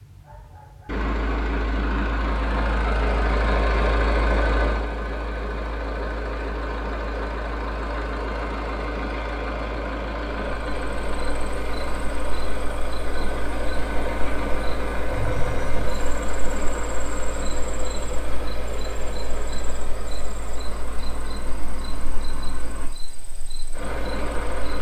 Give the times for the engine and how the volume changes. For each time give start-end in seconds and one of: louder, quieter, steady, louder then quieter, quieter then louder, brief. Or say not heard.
0.0-24.7 quieter.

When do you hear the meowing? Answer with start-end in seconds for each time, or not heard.
15.1-15.9.